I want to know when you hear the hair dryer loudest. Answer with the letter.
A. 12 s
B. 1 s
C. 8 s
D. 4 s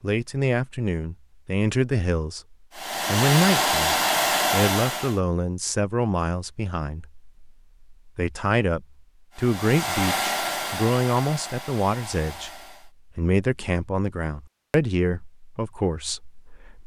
D.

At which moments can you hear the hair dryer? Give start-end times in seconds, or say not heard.
2.8-5.2, 9.3-12.9.